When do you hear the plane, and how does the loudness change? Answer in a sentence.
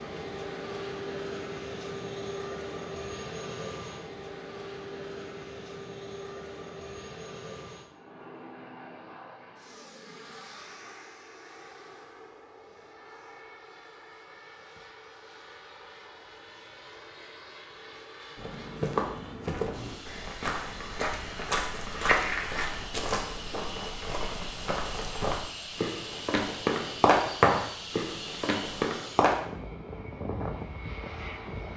You can hear the plane from 0.0 to 31.7 s, getting quieter then louder.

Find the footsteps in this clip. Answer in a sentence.
The footsteps can be heard from 18.4 to 29.4 s.